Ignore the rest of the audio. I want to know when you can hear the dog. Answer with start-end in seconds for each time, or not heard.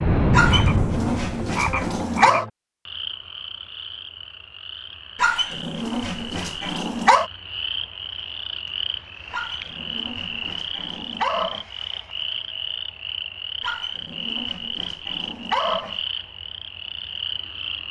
0.3-2.5, 5.2-7.3, 9.3-11.7, 13.6-16.0.